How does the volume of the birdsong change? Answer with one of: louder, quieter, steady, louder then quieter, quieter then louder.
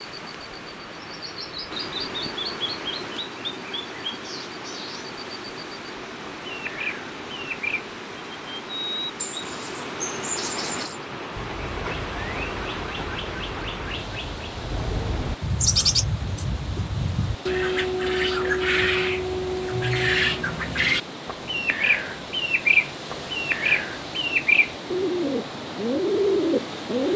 louder.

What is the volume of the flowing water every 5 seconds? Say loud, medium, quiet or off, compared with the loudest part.
loud, loud, loud, medium, loud, loud.